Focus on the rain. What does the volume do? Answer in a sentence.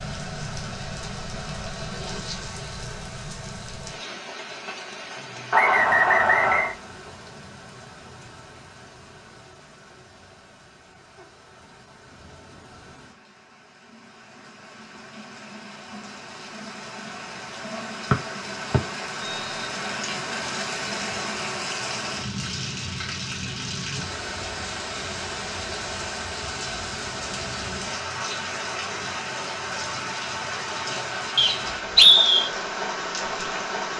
The volume of the rain goes down, then up.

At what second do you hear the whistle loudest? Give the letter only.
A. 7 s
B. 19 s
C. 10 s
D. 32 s
D.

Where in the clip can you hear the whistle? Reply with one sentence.
The whistle can be heard from 5.5 to 6.8 s, from 18.1 to 19.6 s and from 31.4 to 32.5 s.